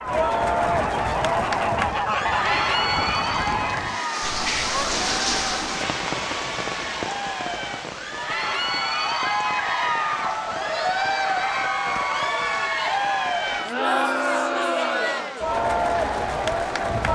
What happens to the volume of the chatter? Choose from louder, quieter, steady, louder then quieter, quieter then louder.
quieter then louder.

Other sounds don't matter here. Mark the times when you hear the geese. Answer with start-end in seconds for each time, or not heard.
0.0-5.7.